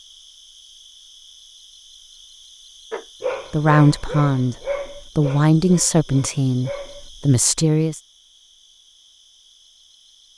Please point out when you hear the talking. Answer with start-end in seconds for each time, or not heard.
3.5-8.0.